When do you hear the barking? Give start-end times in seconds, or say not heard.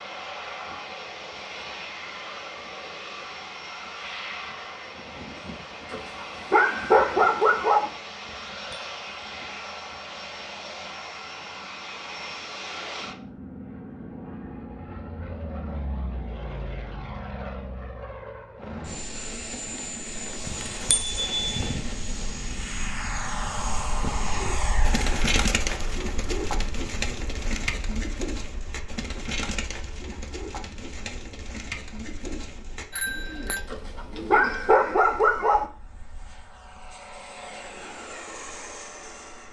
5.9-7.9, 33.7-35.6.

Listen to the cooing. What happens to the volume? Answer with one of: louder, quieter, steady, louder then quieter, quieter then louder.
quieter.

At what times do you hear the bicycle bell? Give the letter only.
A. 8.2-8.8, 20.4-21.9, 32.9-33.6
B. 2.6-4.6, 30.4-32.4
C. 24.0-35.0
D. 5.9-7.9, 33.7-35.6
A.